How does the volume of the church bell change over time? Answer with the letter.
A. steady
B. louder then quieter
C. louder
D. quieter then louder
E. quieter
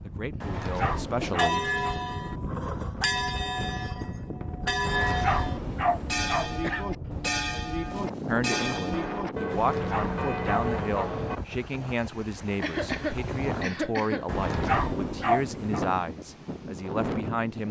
A.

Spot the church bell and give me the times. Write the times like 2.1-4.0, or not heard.
1.2-11.3.